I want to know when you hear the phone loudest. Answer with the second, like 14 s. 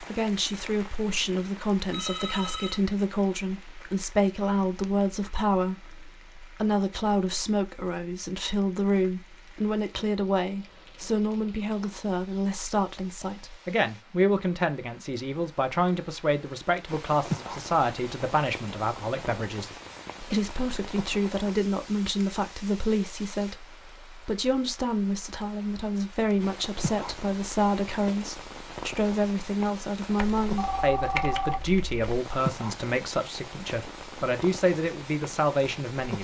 31 s.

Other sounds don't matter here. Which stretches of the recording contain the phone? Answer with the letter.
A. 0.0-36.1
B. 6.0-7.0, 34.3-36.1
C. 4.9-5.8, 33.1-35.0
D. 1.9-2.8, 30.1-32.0
D.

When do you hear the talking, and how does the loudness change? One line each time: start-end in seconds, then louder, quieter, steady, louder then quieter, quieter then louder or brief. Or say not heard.
0.0-36.1 steady.